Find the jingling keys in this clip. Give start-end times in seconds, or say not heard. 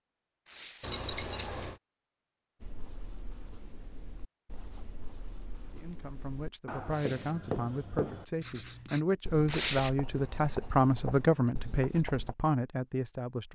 0.8-1.7, 10.1-11.6.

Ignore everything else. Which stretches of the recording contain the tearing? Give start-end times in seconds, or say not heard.
0.5-0.9, 6.9-7.3, 9.4-9.9.